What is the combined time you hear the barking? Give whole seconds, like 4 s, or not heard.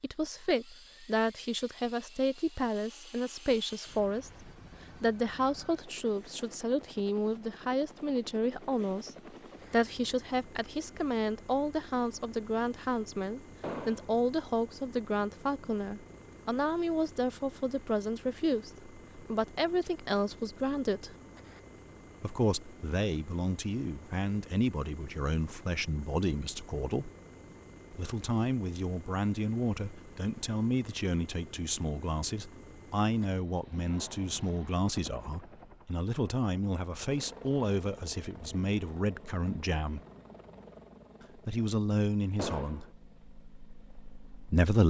not heard.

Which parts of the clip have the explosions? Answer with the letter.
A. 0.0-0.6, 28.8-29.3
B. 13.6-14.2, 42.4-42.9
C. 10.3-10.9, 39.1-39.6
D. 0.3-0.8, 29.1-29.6
B.